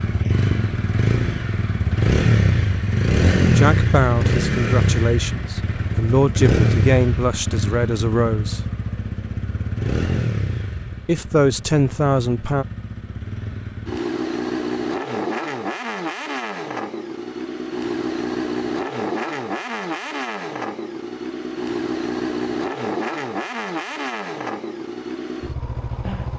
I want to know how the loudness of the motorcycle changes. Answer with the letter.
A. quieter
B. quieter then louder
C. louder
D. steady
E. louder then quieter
A.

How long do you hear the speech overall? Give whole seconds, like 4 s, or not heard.
7 s.